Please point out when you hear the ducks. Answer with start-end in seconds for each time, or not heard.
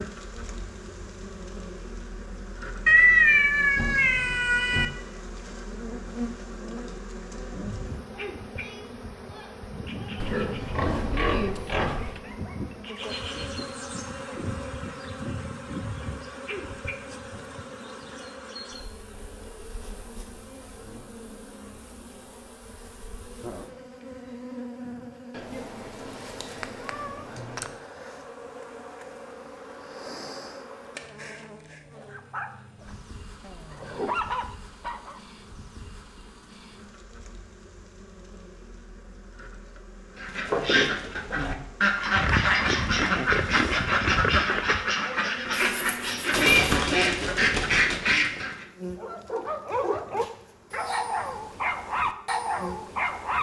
40.1-48.6.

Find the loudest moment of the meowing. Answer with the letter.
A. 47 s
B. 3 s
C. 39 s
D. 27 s
B.